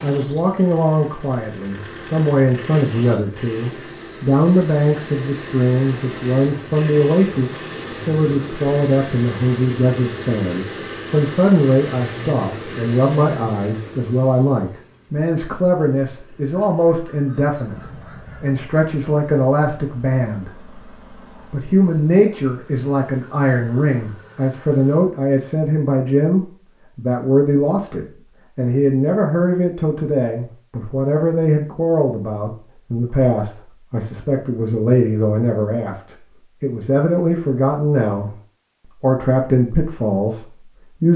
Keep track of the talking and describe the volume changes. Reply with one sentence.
The volume of the talking stays about the same.